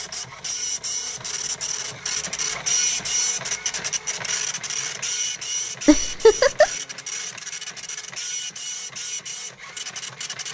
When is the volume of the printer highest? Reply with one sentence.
The loudest moment of the printer is at 3 seconds.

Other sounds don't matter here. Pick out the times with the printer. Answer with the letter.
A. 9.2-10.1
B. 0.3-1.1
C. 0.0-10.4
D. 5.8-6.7
C.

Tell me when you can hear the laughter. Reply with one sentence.
The laughter can be heard from 5.8 to 6.7 s.